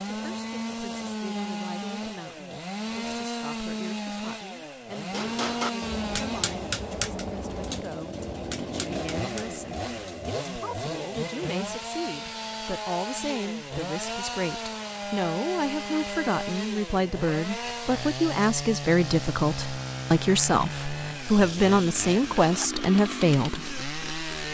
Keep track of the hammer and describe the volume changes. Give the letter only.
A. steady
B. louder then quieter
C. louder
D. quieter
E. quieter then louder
D.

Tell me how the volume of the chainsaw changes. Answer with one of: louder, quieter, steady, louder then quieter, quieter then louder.
steady.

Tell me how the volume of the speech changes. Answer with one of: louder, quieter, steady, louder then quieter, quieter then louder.
louder.